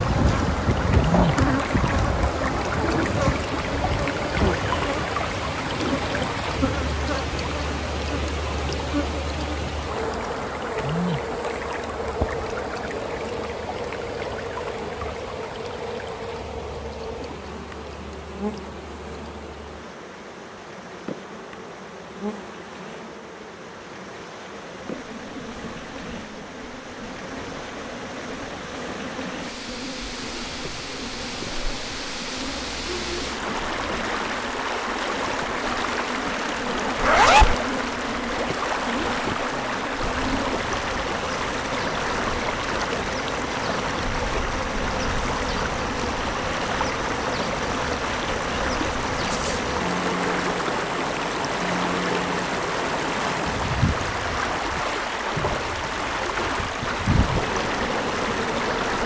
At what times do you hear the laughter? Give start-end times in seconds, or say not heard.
not heard.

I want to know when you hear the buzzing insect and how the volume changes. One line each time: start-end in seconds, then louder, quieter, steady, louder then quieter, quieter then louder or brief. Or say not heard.
0.0-59.0 quieter then louder.